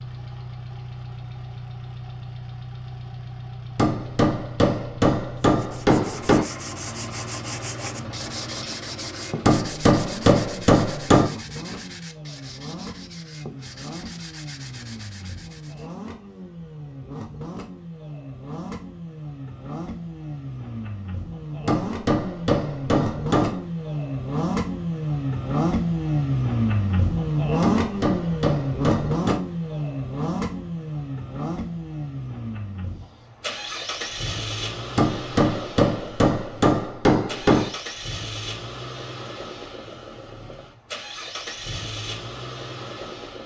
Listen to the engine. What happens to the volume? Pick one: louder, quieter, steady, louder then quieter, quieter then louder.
louder then quieter.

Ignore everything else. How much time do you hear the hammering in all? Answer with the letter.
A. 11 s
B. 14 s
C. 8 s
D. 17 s
A.